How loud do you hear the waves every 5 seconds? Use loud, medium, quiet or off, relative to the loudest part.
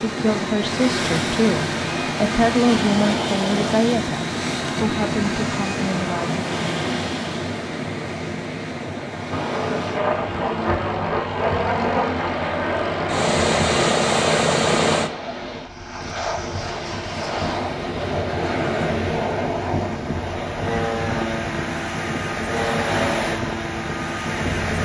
loud, loud, medium, medium, loud.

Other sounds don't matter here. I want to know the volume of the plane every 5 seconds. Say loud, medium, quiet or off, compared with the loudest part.
medium, medium, loud, medium, medium.